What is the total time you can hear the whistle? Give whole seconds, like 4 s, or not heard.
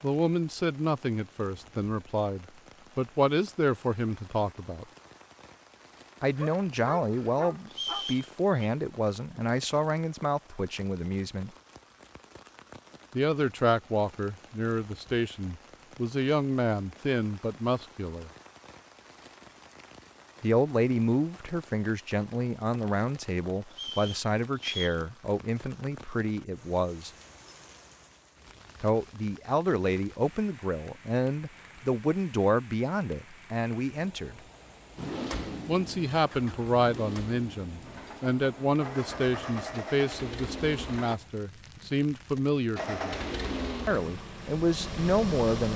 2 s.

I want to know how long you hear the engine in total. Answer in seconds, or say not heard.
9 s.